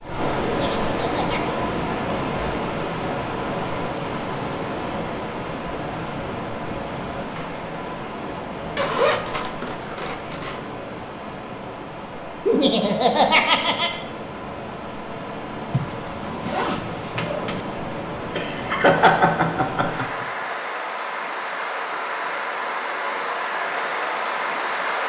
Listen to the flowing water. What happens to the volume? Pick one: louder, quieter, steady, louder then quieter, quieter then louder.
quieter then louder.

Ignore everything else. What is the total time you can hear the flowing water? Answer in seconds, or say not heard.
25 s.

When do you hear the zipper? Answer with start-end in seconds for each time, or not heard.
8.8-10.6, 15.7-17.6.